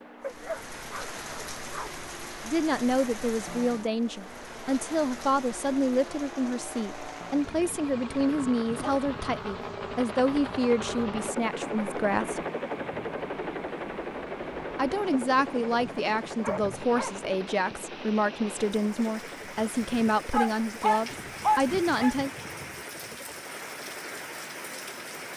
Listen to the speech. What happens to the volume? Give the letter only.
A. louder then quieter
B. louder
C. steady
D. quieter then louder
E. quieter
C.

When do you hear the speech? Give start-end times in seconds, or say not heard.
2.5-12.4, 14.8-22.3.